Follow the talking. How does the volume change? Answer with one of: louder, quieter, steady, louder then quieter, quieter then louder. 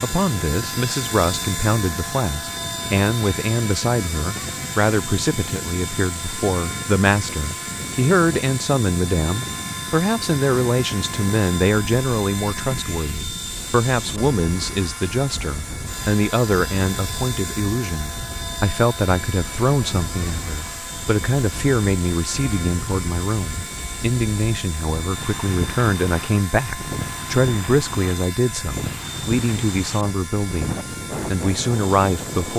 steady.